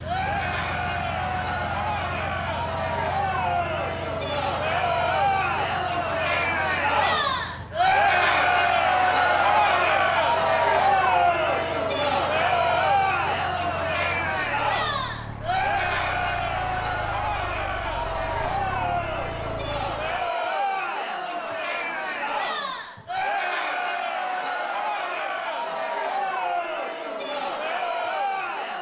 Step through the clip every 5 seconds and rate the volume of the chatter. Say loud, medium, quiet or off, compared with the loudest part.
medium, loud, loud, medium, medium, medium.